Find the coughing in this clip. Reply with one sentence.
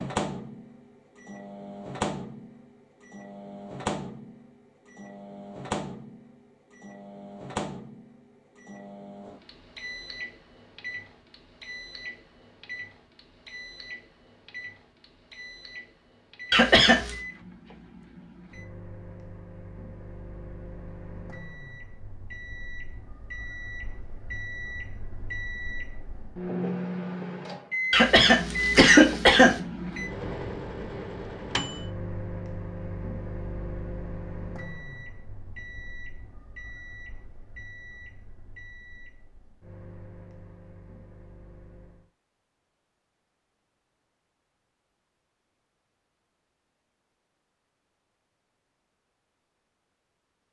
You can hear the coughing from 16.5 to 17.1 s and from 27.9 to 29.6 s.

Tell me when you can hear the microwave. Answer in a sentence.
You can hear the microwave from 0.0 to 42.1 s.